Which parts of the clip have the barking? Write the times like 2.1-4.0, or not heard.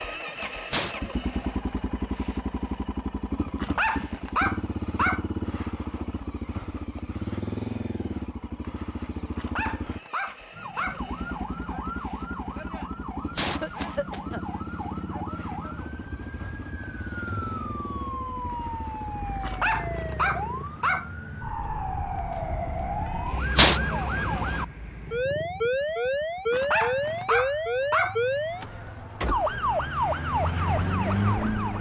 3.5-5.2, 9.3-11.0, 19.4-21.1, 26.5-28.1.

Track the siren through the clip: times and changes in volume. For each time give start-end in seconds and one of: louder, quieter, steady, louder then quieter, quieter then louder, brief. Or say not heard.
10.5-31.7 louder.